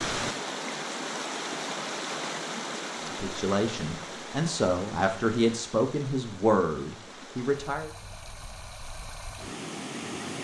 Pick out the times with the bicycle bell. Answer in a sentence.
You can't hear the bicycle bell here.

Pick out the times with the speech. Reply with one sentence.
You can hear the speech from 3.1 to 7.9 s.